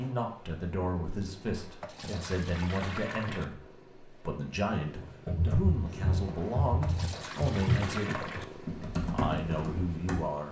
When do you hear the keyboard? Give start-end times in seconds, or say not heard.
5.0-10.2.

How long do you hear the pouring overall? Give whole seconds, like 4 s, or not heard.
3 s.